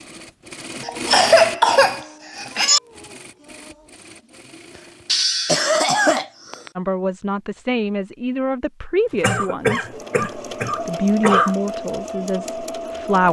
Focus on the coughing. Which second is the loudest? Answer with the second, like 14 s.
1 s.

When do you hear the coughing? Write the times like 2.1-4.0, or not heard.
0.8-2.8, 5.0-6.7, 9.2-11.6.